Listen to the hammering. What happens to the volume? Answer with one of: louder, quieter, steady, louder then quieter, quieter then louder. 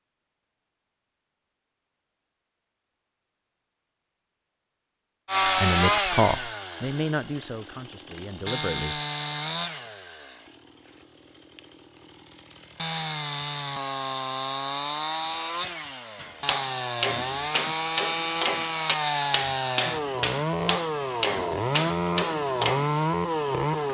steady.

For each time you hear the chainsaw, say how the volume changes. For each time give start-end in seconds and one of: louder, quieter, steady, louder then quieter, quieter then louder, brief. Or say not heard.
5.2-23.9 quieter then louder.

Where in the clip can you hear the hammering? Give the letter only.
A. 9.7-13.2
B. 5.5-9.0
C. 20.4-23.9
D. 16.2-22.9
D.